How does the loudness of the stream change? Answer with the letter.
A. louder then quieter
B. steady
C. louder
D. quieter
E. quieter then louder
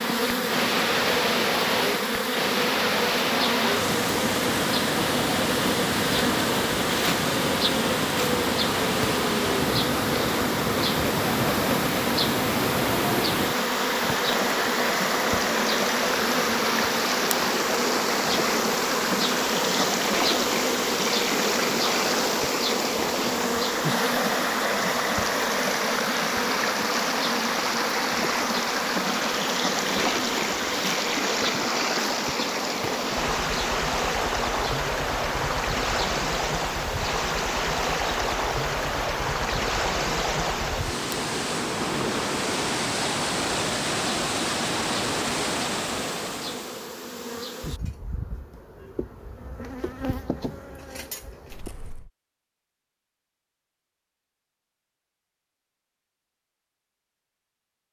B.